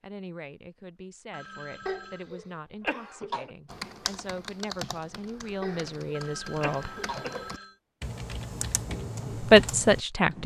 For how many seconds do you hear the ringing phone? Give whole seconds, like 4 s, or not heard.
3 s.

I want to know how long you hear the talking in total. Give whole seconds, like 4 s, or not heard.
8 s.